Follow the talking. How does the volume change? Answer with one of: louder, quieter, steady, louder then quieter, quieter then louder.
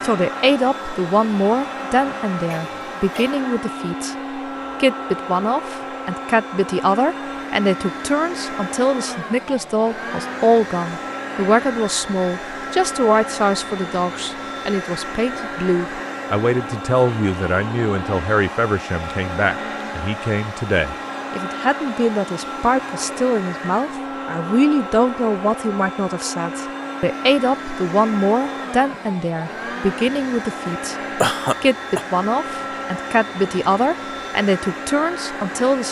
steady.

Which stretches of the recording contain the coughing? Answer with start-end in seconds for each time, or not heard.
2.5-3.4, 31.2-32.0.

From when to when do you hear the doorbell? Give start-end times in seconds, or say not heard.
not heard.